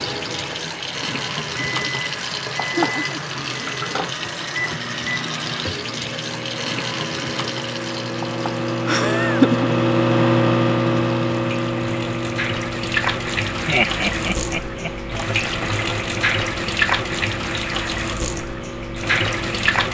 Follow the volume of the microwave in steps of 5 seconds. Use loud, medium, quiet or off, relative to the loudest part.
medium, loud, loud, medium.